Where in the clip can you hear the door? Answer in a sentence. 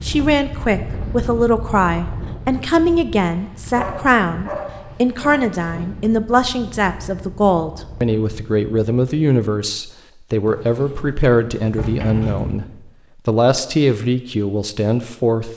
The door can be heard from 10.4 to 12.6 s.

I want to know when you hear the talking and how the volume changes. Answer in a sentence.
The talking can be heard from 0.0 to 12.7 s, at a steady volume; and briefly from 13.2 to 15.5 s.